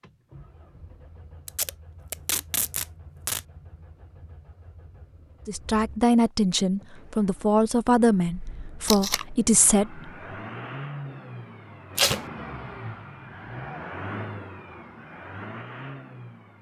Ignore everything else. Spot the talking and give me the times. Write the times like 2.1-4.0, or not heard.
5.5-10.0.